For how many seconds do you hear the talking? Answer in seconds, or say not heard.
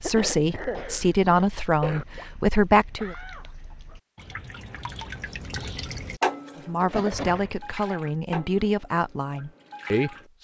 7 s.